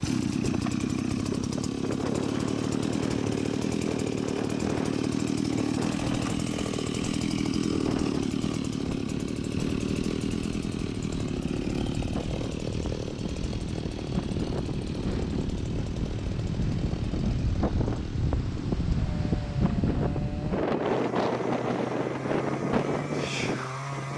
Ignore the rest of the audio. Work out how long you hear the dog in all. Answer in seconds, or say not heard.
not heard.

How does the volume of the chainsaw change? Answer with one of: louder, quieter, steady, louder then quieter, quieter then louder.
quieter.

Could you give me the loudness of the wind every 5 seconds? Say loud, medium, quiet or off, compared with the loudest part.
medium, medium, medium, loud, loud.